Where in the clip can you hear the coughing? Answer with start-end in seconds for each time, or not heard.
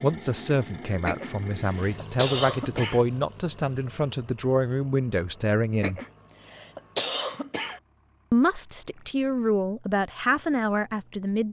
1.1-3.0, 5.8-7.8.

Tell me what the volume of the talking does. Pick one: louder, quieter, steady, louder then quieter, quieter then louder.
steady.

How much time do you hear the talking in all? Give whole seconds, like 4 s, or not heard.
9 s.